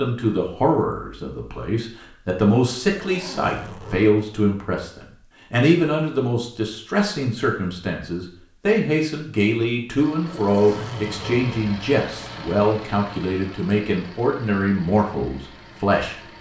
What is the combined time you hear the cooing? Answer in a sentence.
You can't hear the cooing here.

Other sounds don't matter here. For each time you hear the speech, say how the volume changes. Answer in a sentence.
You can hear the speech from 0.0 to 16.2 s, at a steady volume.